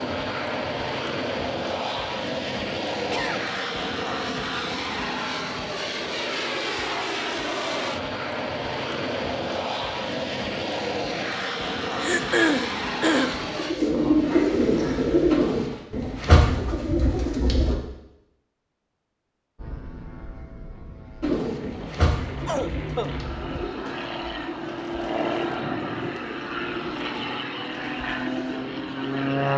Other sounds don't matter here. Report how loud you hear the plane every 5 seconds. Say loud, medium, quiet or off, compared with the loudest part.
loud, loud, loud, quiet, medium, loud.